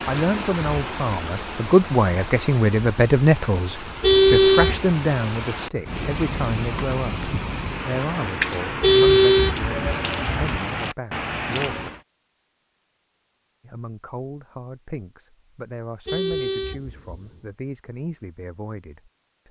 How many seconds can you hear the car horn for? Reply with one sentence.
The car horn can be heard for 4 seconds in total.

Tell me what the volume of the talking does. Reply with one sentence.
The loudness of the talking goes down.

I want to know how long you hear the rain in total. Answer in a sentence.
The rain can be heard for 12 seconds in total.